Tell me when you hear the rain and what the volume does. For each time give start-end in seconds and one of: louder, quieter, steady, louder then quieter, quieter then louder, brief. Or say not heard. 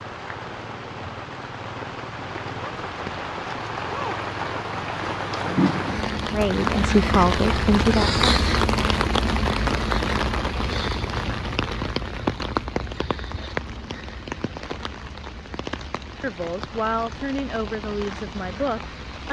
0.0-19.2 louder then quieter.